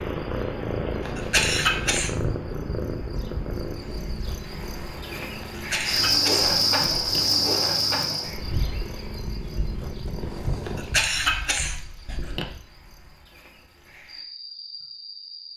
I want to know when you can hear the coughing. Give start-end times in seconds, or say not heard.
1.1-2.1, 5.5-7.2, 10.7-12.4.